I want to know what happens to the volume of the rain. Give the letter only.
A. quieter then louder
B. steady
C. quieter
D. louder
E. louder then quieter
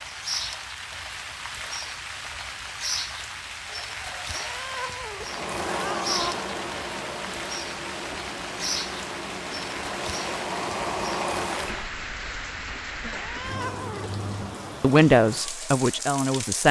B.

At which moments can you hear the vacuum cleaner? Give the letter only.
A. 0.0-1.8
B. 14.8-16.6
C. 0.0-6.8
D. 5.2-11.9
D.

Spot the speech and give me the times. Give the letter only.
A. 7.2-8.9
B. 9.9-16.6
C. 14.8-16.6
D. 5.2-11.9
C.